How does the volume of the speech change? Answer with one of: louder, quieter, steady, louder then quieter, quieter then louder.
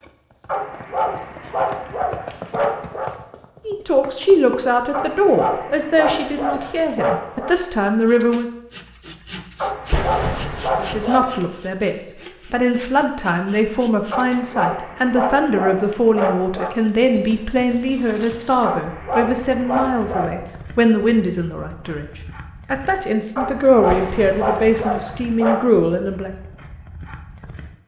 steady.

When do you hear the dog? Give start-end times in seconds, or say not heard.
0.5-3.1, 4.9-7.5, 9.6-11.4, 14.1-16.8, 18.6-20.4, 23.4-25.8.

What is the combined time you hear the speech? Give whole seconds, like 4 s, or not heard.
20 s.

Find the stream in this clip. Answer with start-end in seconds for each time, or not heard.
not heard.